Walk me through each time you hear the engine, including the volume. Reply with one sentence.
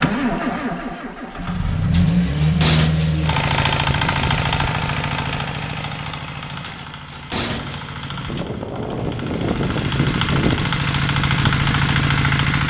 The engine can be heard from 0.0 to 12.6 s, getting quieter then louder.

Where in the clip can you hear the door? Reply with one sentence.
You can hear the door from 1.9 to 3.3 s and from 6.6 to 8.4 s.